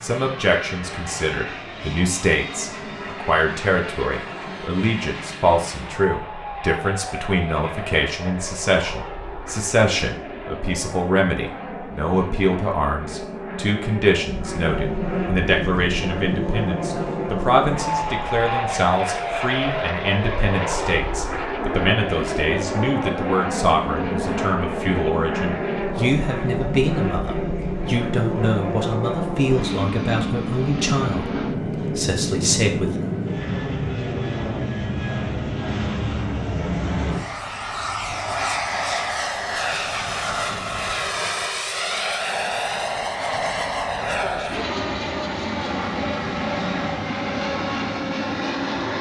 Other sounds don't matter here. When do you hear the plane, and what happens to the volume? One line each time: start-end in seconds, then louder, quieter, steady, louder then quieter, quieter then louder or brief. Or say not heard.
0.0-48.9 louder.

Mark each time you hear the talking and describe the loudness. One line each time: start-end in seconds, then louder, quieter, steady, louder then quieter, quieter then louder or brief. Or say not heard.
0.0-33.1 steady.